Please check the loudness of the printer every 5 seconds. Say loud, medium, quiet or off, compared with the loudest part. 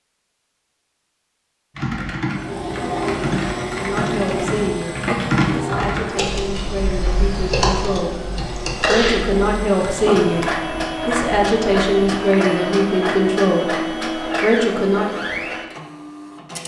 loud, medium, loud, medium.